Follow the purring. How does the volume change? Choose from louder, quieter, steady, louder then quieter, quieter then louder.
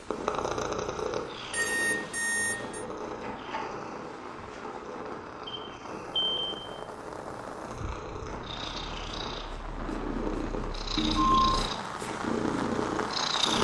quieter then louder.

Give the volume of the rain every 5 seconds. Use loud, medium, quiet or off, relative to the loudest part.
medium, loud, loud.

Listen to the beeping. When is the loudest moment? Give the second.
11 s.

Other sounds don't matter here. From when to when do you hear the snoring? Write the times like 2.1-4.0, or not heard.
not heard.